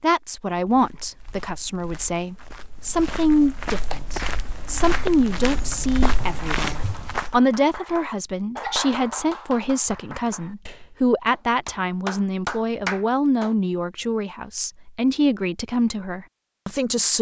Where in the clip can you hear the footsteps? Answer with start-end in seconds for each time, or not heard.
0.6-7.4.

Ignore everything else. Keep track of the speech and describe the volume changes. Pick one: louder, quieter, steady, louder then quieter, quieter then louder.
steady.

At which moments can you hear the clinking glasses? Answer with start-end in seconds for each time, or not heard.
not heard.